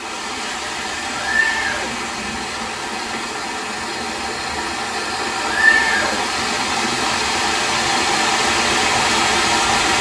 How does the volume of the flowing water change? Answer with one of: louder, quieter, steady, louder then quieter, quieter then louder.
louder.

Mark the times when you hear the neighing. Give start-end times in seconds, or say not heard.
1.2-2.5, 5.4-6.4.